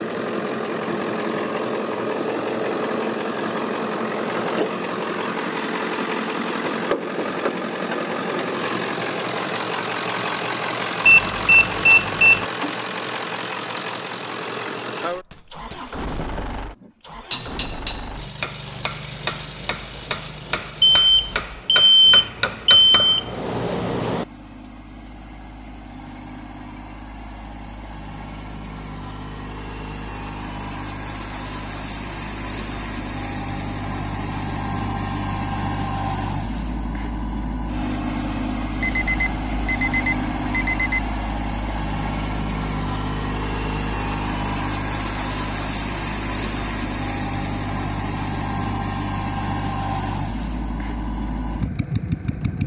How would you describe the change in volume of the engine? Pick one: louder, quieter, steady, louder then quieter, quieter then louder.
quieter then louder.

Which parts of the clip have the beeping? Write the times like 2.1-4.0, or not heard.
11.1-12.4, 20.8-23.2, 38.8-41.1.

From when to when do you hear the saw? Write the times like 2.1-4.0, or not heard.
not heard.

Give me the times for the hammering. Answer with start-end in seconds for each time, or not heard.
15.2-24.2.